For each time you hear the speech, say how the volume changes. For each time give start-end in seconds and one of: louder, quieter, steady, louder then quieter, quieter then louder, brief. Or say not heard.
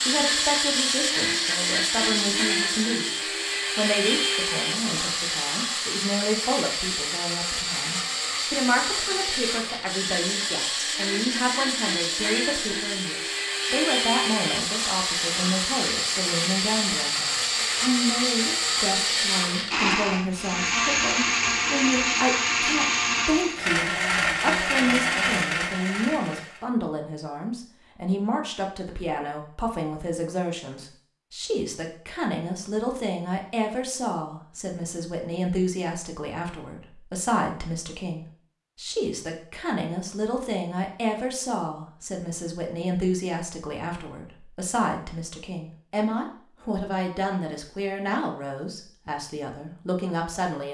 0.0-50.6 steady.